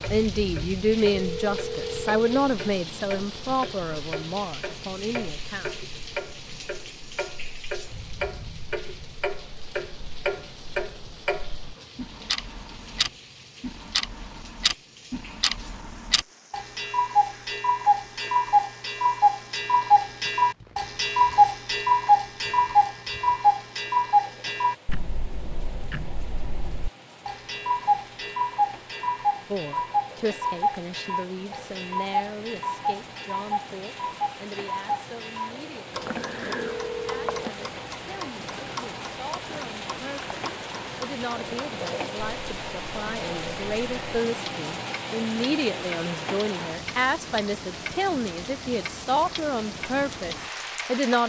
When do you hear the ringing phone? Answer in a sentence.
You can hear the ringing phone from 1.1 to 2.3 s and from 36.5 to 37.5 s.